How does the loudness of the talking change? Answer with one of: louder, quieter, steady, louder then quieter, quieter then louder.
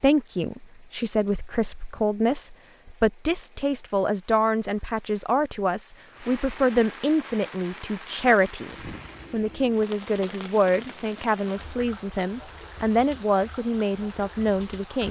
steady.